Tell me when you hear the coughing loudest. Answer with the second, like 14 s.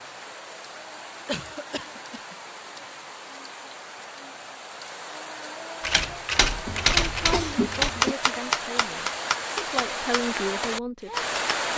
7 s.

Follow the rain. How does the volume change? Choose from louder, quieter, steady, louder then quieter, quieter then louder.
louder.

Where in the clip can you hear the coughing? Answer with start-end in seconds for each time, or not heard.
1.2-2.4, 6.7-8.2.